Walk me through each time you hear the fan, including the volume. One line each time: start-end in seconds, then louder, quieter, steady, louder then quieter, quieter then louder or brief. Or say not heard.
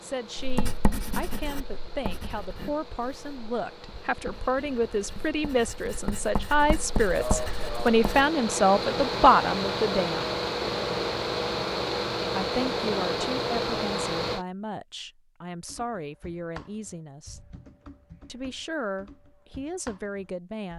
0.0-14.4 louder.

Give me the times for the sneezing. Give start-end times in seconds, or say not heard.
7.2-8.0.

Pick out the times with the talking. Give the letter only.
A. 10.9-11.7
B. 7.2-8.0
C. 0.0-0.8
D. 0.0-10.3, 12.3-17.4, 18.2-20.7
D.